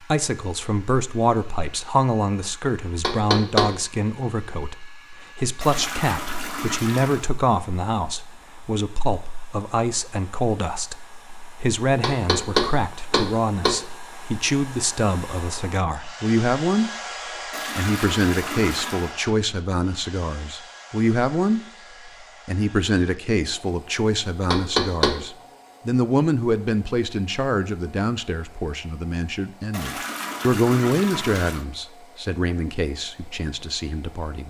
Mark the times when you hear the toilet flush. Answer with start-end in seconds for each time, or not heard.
5.6-7.3, 17.5-19.1, 29.7-31.6.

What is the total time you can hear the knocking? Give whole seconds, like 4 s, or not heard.
3 s.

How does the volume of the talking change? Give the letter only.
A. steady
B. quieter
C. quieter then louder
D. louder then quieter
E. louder
A.